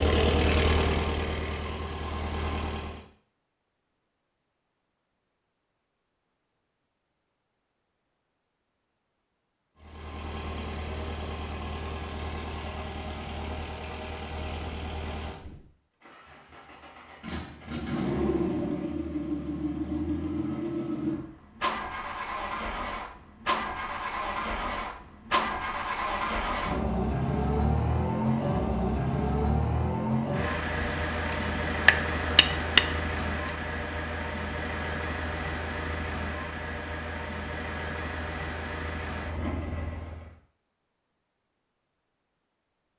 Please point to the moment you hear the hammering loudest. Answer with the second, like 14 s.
33 s.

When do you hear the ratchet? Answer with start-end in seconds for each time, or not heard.
not heard.